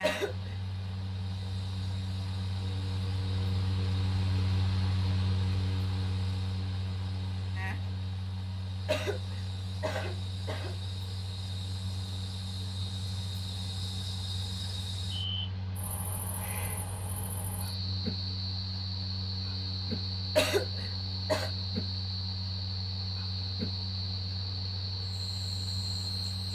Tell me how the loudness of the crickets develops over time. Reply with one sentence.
The volume of the crickets goes up.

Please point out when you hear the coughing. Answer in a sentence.
You can hear the coughing from 0.0 to 0.6 s, from 8.8 to 10.8 s and from 20.4 to 21.5 s.